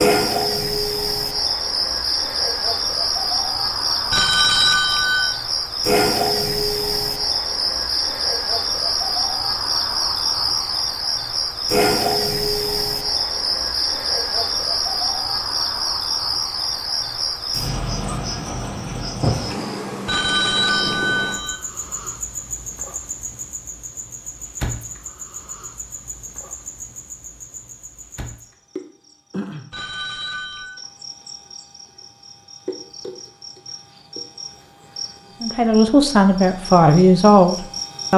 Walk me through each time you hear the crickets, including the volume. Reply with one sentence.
The crickets can be heard from 0.0 to 38.1 s, getting quieter.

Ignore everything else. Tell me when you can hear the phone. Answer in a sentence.
The phone can be heard from 4.1 to 5.4 s, from 20.1 to 21.6 s and from 29.7 to 30.8 s.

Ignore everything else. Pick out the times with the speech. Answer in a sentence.
You can hear the speech from 35.4 to 38.1 s.